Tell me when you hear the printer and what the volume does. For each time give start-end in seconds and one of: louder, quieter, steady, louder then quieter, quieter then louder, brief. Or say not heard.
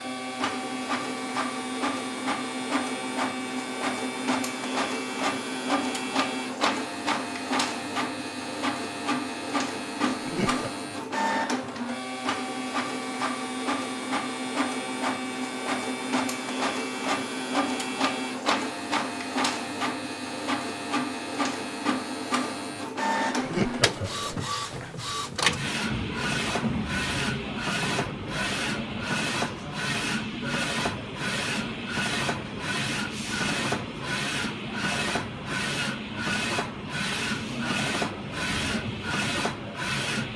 0.0-40.3 steady.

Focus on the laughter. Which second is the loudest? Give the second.
24 s.